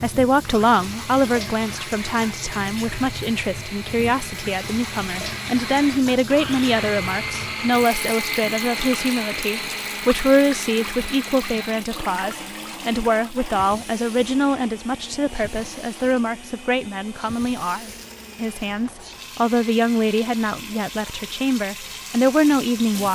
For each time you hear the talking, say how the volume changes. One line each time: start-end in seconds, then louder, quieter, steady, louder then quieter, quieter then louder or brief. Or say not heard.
0.0-23.0 steady.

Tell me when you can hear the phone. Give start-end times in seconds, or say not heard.
not heard.